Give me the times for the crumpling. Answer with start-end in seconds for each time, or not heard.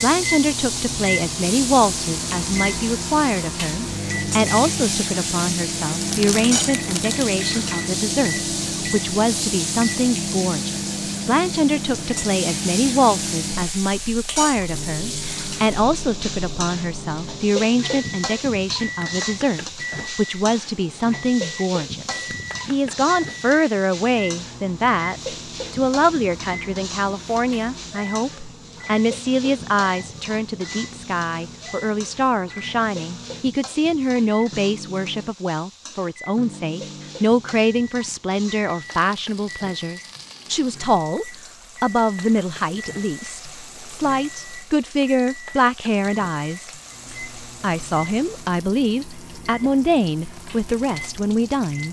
6.0-7.3.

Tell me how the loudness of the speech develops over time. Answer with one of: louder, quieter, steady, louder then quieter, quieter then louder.
steady.